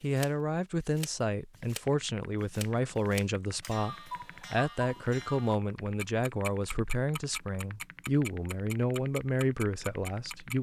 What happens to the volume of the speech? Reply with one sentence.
The loudness of the speech stays about the same.